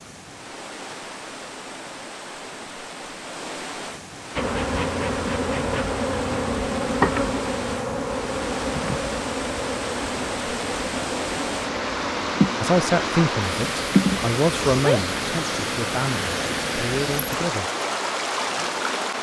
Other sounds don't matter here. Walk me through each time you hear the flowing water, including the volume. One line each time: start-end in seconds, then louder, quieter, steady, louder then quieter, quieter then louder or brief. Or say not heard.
0.0-19.1 louder.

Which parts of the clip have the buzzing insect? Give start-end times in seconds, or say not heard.
4.3-17.4.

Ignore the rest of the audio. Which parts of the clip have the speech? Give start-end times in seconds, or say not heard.
12.6-17.7.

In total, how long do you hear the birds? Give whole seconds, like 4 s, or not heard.
not heard.